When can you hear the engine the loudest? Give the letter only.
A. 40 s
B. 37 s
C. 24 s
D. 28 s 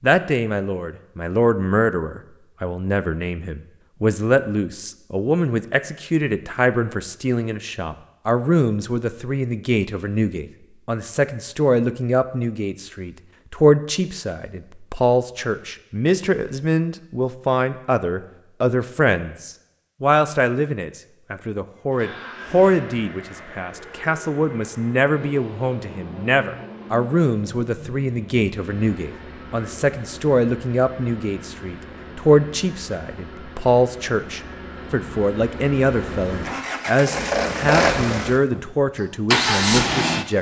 A.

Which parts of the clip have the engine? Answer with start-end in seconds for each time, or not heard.
21.8-40.3.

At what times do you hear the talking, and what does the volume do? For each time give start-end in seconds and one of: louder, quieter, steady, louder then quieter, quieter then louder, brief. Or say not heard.
0.0-40.3 steady.